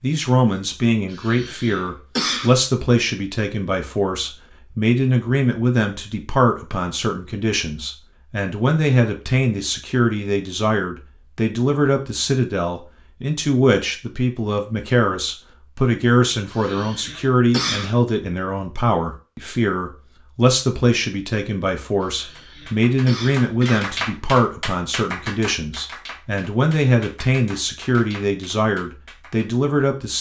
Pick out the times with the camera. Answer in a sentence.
The camera can't be heard in this clip.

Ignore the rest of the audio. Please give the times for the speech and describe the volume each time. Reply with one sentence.
The speech can be heard from 0.0 to 30.1 s, at a steady volume.